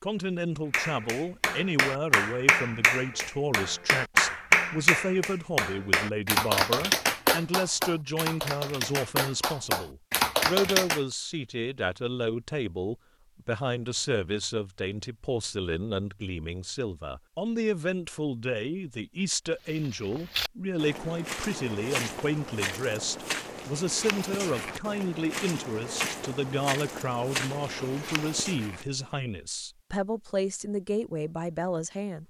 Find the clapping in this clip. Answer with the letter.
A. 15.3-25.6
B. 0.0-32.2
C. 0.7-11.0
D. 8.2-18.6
C.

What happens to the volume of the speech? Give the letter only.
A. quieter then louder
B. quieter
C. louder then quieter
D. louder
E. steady
E.